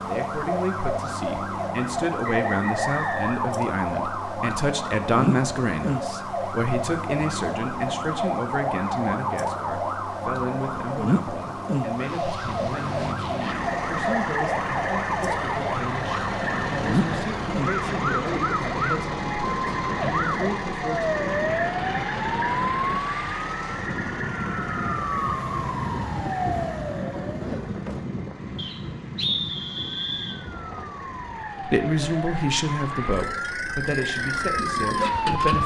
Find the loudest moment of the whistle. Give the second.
29 s.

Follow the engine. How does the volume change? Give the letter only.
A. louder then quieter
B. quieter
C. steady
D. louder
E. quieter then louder
E.